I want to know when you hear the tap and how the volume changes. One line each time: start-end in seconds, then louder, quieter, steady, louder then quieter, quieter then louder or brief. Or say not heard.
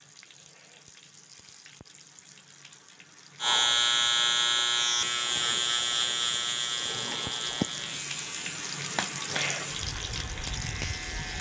0.0-11.3 louder.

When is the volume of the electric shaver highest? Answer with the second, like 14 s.
4 s.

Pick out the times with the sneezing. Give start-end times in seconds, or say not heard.
not heard.